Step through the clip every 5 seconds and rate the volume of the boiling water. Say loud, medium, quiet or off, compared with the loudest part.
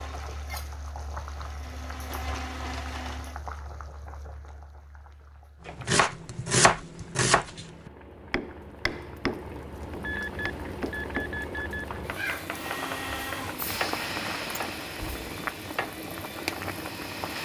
medium, medium, loud, loud.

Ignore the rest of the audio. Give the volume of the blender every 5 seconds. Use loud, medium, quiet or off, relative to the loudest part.
medium, off, loud, medium.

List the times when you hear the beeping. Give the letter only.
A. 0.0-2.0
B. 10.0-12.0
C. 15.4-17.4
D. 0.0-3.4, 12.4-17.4
B.